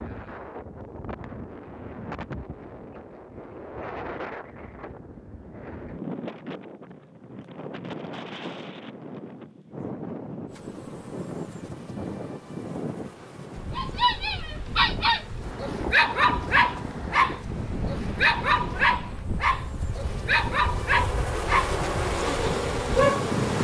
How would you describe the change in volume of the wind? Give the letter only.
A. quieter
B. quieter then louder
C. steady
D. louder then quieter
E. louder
C.